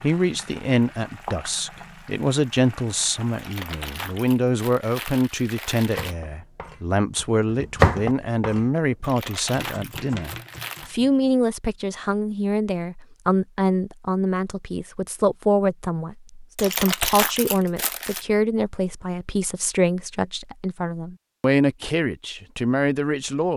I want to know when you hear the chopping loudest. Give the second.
8 s.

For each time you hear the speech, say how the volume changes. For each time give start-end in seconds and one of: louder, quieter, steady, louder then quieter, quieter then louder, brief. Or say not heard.
0.0-23.5 steady.